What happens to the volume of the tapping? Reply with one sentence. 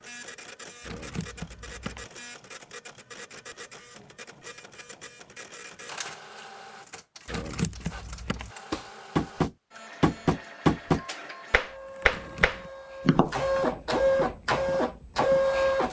The volume of the tapping goes down.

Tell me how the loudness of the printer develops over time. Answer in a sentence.
The loudness of the printer goes up.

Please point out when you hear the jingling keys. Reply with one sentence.
The jingling keys can be heard from 0.8 to 2.1 s, from 7.2 to 8.6 s and from 12.1 to 12.7 s.